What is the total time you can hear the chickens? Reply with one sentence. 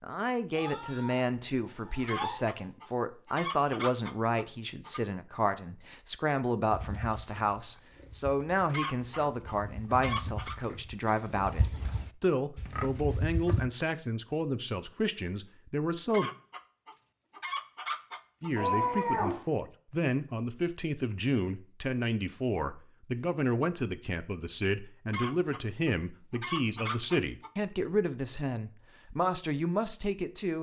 The chickens can be heard for 10 seconds in total.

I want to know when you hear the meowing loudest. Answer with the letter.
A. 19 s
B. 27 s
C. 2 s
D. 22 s
A.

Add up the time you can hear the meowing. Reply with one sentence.
The meowing can be heard for 3 seconds in total.